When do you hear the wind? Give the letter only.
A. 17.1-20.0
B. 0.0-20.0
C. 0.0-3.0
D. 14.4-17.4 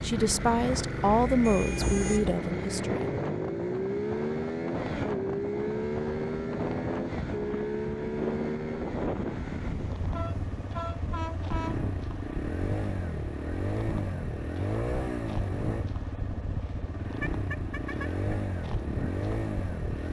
B.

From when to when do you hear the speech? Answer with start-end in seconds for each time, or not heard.
0.0-3.0.